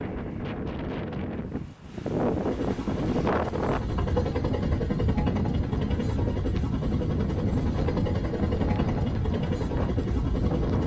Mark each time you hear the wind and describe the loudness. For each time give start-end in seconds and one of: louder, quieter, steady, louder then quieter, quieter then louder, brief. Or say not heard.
0.0-10.8 steady.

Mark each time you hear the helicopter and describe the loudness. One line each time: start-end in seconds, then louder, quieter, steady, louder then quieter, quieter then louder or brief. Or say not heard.
2.3-10.8 steady.